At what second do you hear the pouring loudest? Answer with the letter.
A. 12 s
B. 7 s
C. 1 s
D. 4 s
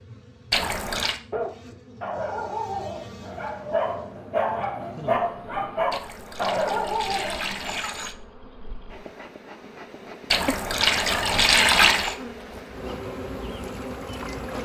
A.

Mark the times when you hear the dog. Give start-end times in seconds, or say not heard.
1.3-7.9.